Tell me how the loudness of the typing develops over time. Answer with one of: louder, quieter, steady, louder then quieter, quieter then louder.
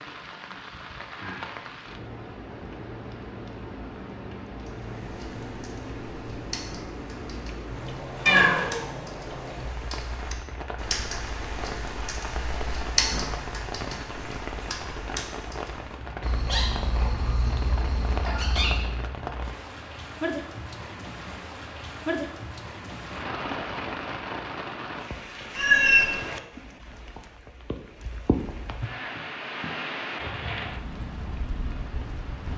louder then quieter.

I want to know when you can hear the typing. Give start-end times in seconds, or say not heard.
4.6-16.1.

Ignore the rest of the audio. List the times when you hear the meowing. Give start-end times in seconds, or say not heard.
8.2-8.8, 16.2-18.9, 25.6-26.1.